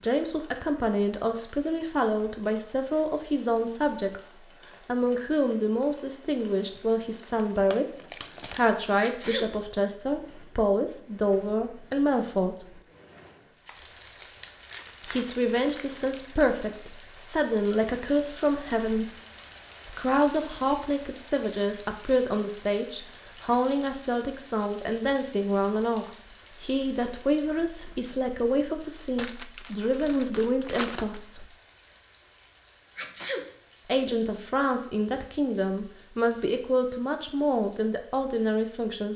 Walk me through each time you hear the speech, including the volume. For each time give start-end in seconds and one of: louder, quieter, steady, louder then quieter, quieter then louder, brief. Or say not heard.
0.0-12.8 steady
15.1-19.1 quieter then louder
19.9-31.4 steady
33.9-39.1 steady.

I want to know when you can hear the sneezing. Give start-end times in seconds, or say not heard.
9.0-9.6, 33.0-33.5.